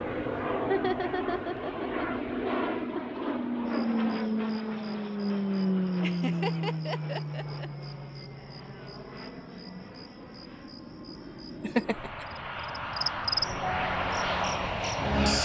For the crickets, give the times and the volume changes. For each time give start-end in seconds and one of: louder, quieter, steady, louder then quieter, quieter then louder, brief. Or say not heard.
3.6-15.3 louder.